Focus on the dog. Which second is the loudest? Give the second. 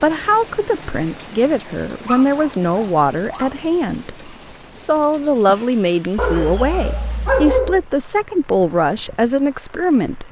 7 s.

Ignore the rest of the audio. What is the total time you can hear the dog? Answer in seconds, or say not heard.
3 s.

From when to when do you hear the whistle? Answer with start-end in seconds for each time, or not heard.
not heard.